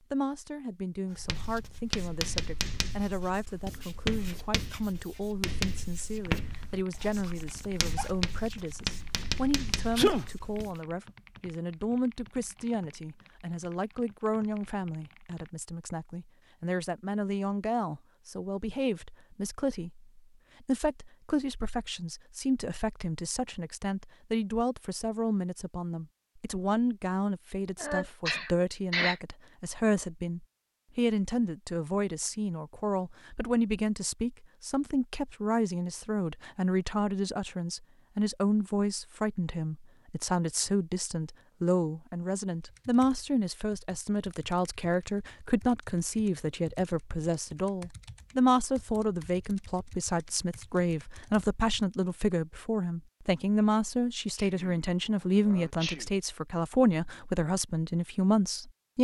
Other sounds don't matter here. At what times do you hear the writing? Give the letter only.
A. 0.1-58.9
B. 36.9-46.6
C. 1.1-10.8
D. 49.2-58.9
C.